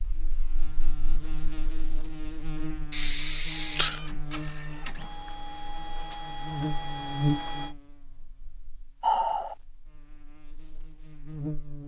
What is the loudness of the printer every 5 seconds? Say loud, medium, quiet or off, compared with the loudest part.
medium, loud, off.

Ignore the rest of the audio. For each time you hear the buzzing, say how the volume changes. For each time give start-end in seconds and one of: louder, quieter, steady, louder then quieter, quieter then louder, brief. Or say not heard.
0.0-11.8 louder then quieter.